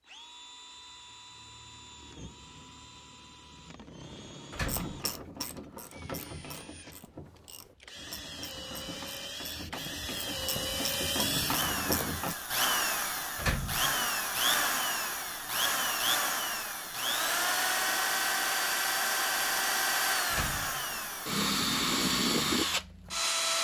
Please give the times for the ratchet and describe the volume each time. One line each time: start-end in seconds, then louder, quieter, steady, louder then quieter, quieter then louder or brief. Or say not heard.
4.7-12.3 quieter then louder.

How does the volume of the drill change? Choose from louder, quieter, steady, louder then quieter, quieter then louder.
louder.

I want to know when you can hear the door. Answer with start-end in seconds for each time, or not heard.
4.5-5.0, 13.3-14.1, 20.3-21.0.